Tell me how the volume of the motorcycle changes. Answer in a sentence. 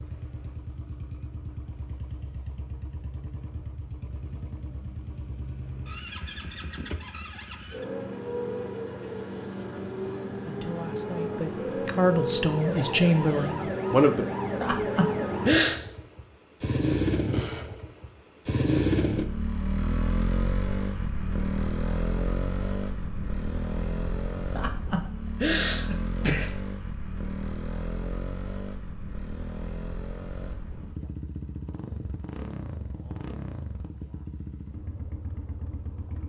The volume of the motorcycle goes up, then down.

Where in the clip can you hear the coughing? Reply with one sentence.
You can hear the coughing from 14.6 to 15.8 s and from 24.6 to 26.5 s.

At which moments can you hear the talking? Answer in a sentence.
The talking can be heard from 10.4 to 14.2 s.